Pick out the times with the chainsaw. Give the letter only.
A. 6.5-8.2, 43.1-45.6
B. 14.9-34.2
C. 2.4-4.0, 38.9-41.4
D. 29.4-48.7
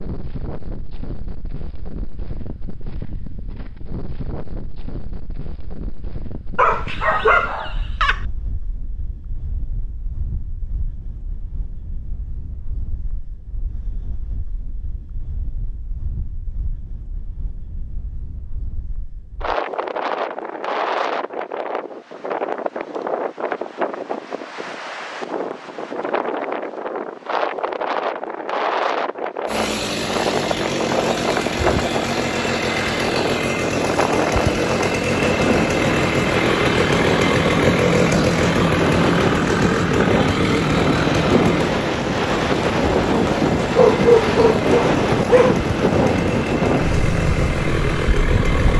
D.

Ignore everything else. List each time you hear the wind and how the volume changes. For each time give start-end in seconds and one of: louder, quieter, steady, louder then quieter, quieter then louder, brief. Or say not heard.
0.0-48.7 louder.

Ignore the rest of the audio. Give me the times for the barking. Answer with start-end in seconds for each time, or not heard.
6.5-8.2, 43.1-45.6.